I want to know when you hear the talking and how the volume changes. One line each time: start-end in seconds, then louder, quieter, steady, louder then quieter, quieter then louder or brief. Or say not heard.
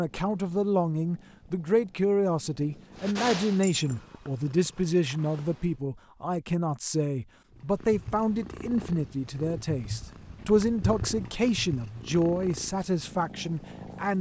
0.0-14.1 steady.